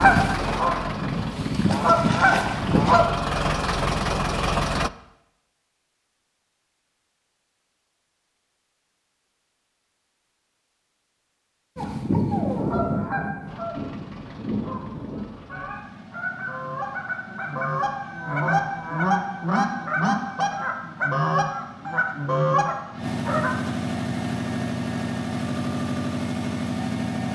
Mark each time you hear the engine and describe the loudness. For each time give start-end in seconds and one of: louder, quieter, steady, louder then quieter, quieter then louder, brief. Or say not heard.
0.0-4.9 quieter then louder
13.4-27.3 louder.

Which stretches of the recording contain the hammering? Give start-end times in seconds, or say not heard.
not heard.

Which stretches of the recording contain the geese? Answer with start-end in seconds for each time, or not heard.
0.0-3.0, 11.8-23.5.